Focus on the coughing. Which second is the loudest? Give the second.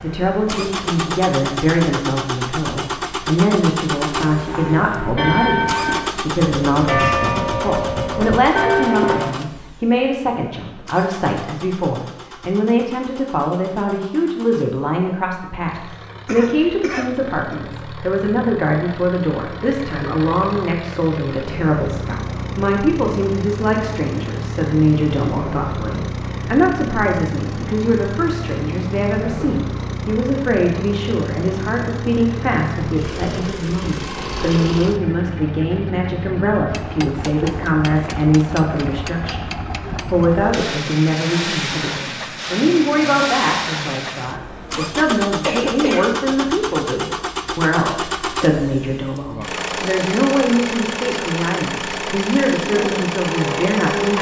46 s.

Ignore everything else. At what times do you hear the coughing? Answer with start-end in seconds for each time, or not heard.
15.8-17.6, 45.4-46.1.